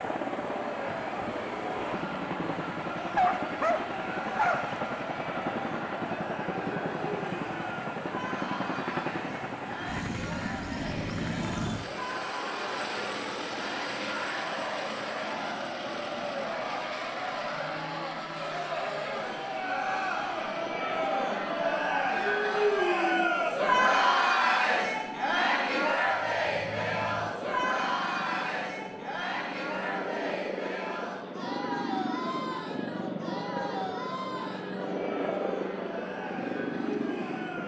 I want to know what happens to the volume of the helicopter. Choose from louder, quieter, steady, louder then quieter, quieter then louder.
quieter then louder.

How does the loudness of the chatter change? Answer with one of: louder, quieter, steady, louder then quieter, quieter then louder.
louder then quieter.